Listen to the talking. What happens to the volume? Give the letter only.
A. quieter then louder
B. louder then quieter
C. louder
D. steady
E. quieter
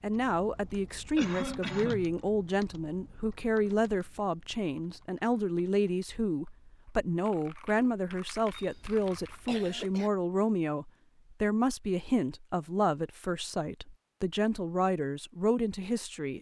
D.